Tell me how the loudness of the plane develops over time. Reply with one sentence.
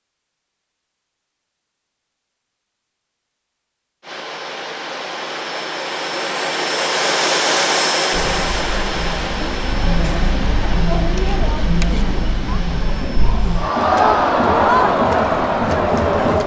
The loudness of the plane goes up, then down.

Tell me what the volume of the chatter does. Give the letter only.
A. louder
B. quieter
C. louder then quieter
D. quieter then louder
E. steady
A.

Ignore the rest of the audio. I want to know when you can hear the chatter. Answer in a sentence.
You can hear the chatter from 8.1 to 16.4 s.